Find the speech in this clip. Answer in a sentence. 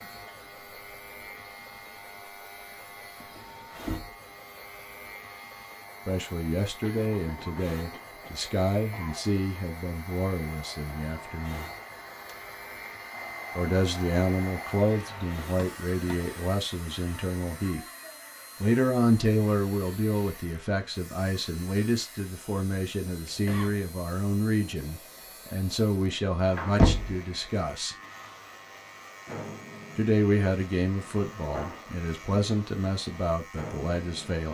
You can hear the speech from 6.0 to 11.7 s, from 13.6 to 17.9 s, from 18.6 to 27.9 s and from 29.9 to 34.5 s.